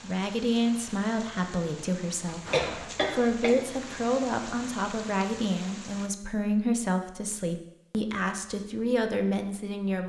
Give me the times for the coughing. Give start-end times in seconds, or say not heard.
2.2-3.5.